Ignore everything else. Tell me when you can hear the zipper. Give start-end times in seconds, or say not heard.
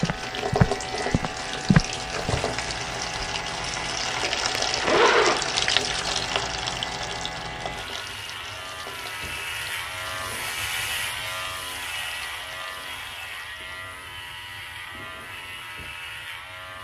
4.8-5.8.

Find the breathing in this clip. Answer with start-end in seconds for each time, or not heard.
not heard.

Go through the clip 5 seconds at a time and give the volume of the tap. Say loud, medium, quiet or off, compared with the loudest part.
loud, loud, quiet, off.